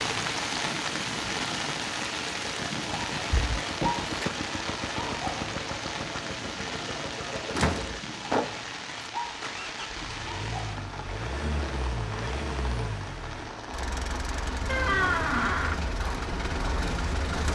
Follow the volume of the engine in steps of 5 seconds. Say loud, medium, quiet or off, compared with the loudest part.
medium, loud, loud, loud.